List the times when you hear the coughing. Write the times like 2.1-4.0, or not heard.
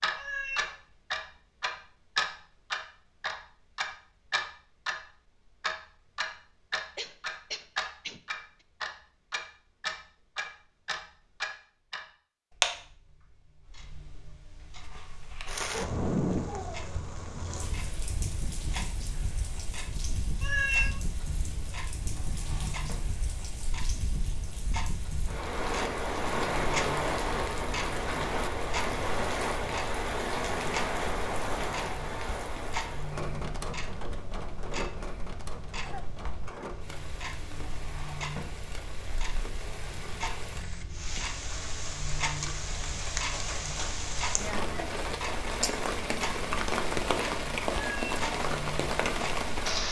7.0-8.2, 35.8-36.6.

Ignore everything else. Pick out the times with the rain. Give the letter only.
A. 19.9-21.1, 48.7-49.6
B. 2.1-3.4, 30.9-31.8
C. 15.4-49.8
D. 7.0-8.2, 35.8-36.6
C.